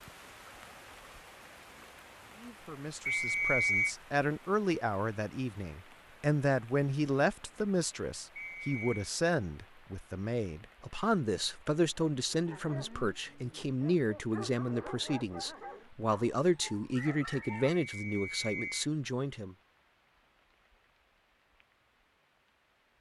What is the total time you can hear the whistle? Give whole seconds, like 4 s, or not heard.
3 s.